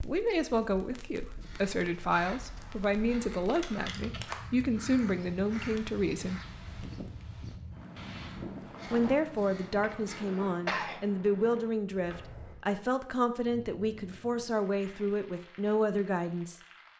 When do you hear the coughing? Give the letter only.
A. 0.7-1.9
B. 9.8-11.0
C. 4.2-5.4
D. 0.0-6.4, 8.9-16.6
B.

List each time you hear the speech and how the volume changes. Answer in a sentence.
The speech can be heard from 0.0 to 6.4 s, at a steady volume; and from 8.9 to 16.6 s, at a steady volume.